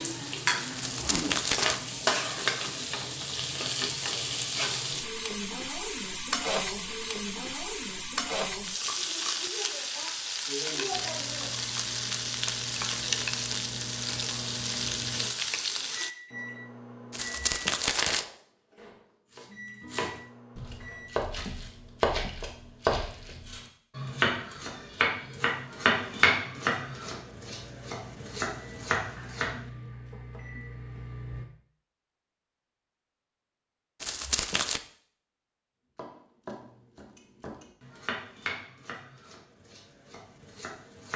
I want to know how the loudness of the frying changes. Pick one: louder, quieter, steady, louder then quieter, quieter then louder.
steady.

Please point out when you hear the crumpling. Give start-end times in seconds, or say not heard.
0.8-1.8, 17.1-18.2, 34.0-34.8.